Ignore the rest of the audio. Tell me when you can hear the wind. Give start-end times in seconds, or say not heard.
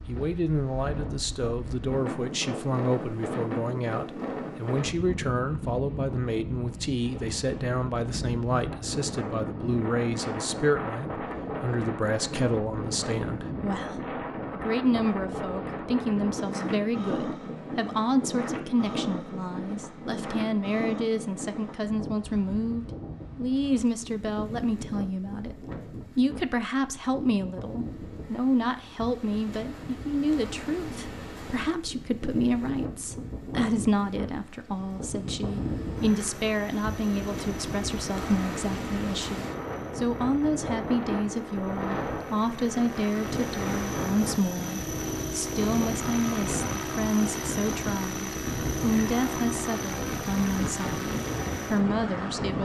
0.0-52.5.